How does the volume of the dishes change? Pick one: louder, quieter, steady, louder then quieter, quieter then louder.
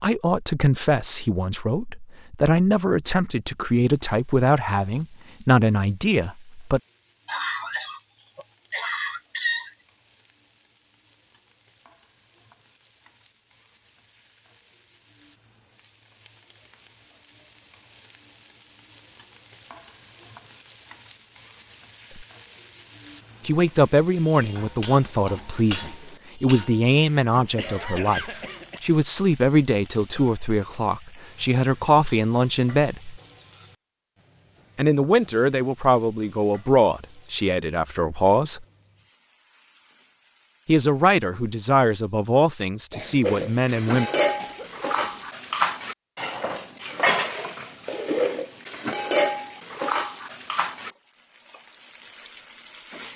steady.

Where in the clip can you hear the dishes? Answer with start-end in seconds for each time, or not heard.
43.2-50.9.